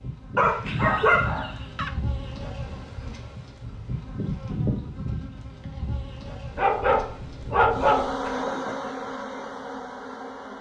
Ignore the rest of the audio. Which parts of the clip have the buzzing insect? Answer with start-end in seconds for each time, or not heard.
0.0-10.5.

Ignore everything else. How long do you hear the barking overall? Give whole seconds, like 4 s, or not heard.
3 s.